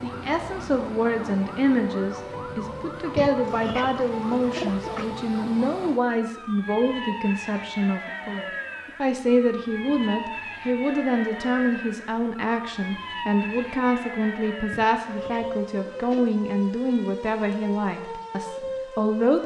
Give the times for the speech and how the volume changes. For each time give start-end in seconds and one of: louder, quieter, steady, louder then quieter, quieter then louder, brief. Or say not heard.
0.0-19.4 steady.